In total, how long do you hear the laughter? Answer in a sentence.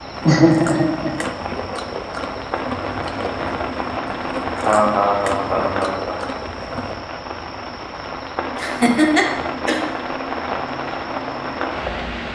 The laughter can be heard for 4 seconds in total.